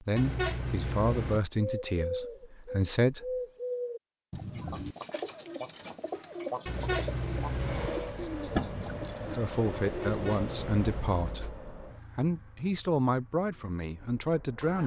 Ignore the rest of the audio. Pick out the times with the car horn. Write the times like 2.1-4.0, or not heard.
0.1-1.4, 6.7-7.9, 10.1-11.2.